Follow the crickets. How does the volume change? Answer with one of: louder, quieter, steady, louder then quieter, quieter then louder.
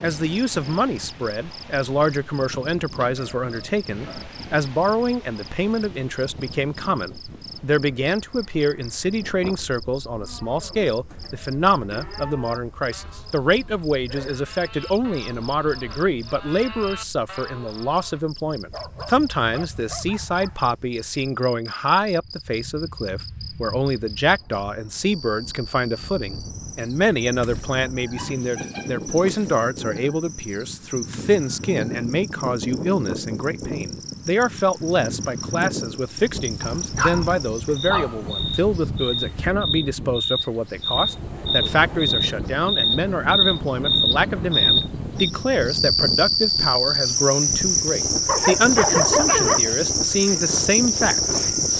louder.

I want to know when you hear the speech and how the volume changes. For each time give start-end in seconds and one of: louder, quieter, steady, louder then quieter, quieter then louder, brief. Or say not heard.
0.0-51.7 steady.